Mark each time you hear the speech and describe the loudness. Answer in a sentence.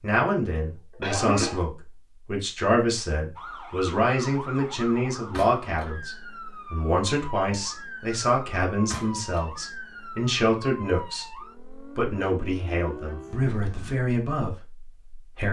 You can hear the speech from 0.0 to 15.4 s, at a steady volume.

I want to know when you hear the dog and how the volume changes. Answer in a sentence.
The dog can't be heard in this clip.